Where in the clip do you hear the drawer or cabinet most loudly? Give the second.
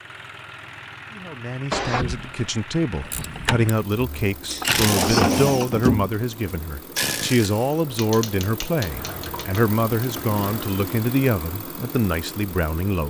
5 s.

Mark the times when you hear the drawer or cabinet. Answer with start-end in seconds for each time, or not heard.
1.7-2.5, 4.5-6.2, 8.8-10.7.